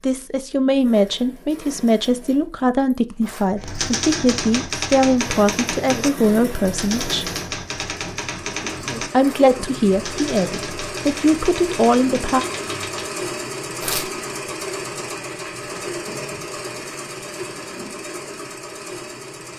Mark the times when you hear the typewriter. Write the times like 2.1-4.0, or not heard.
3.5-13.1.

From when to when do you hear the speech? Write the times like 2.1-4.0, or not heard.
0.0-7.2, 9.1-12.4.